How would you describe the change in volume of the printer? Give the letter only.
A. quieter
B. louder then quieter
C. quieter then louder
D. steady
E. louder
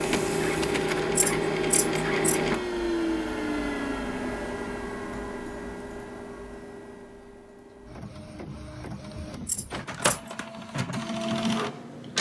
C.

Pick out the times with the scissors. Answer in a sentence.
You can hear the scissors from 1.1 to 2.4 s and from 9.4 to 10.2 s.